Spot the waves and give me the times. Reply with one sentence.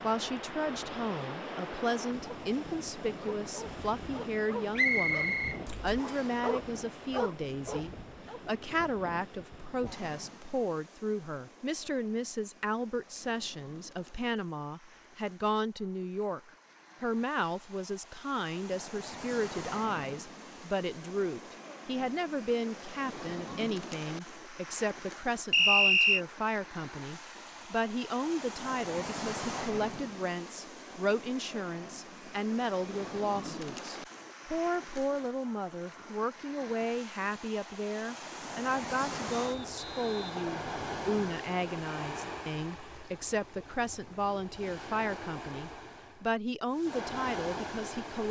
The waves can be heard from 0.0 to 48.2 s.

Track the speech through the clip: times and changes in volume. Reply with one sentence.
You can hear the speech from 0.0 to 48.2 s, at a steady volume.